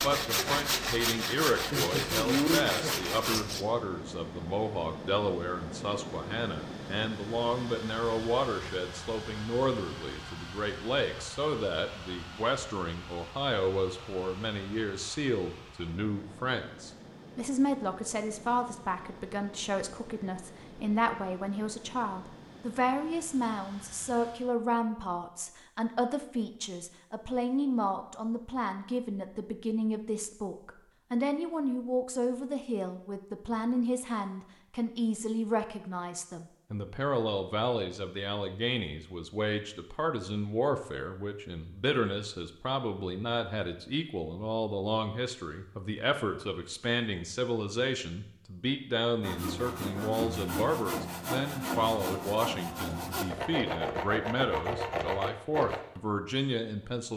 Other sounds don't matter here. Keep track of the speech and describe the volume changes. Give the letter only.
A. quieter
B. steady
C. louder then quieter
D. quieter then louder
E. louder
B.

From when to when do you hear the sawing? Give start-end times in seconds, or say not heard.
0.0-3.6, 49.2-55.8.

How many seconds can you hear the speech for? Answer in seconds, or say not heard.
57 s.